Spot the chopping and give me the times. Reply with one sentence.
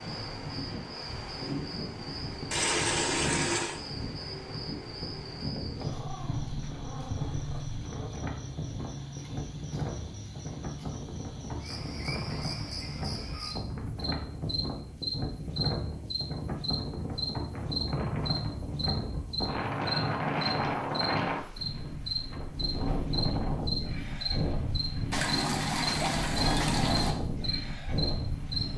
The chopping can't be heard in this clip.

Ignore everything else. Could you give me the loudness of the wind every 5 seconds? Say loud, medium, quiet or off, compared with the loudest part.
medium, medium, medium, loud, loud, loud.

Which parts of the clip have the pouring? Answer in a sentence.
You can hear the pouring from 2.5 to 3.8 s and from 25.1 to 27.1 s.